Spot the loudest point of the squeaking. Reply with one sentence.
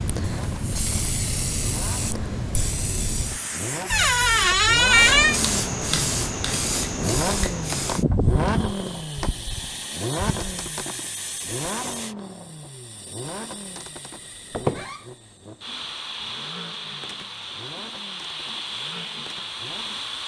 The loudest moment of the squeaking is at 5 seconds.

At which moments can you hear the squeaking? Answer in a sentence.
The squeaking can be heard from 3.9 to 5.4 s and from 14.5 to 15.0 s.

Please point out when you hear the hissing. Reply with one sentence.
The hissing can be heard from 0.0 to 20.2 s.